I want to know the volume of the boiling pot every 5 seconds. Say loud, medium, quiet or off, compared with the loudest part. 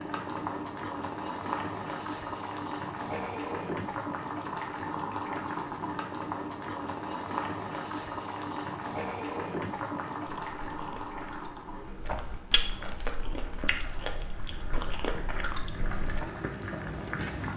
loud, loud, medium, loud.